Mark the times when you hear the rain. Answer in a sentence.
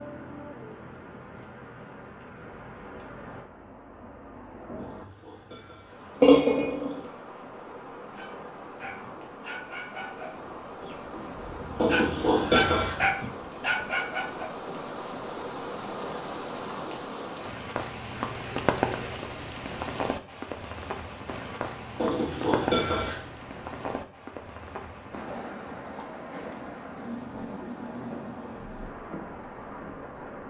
You can hear the rain from 0.0 to 30.4 s.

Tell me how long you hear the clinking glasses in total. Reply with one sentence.
The clinking glasses can be heard for 3 seconds in total.